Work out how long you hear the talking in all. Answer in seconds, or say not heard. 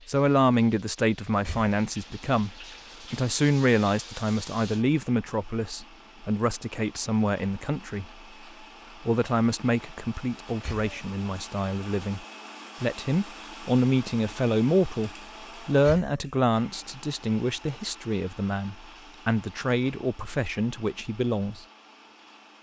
20 s.